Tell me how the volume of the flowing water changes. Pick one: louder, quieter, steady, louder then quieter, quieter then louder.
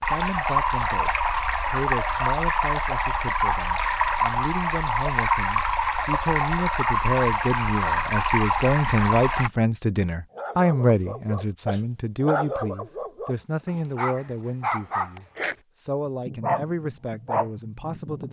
steady.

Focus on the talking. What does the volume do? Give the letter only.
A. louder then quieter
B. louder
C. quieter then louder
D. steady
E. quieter
A.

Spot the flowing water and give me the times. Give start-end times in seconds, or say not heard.
0.0-9.5.